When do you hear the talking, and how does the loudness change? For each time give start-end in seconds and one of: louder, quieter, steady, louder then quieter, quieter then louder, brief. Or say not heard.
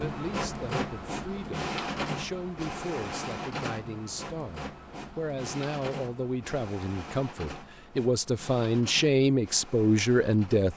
0.0-10.7 louder.